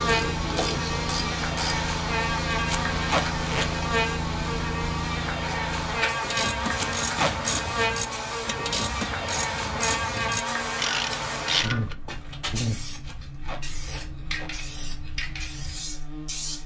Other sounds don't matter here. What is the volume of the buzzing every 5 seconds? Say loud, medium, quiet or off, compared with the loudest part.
loud, loud, loud, quiet.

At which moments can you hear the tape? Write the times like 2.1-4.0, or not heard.
2.6-3.7, 6.8-7.3, 13.0-14.5.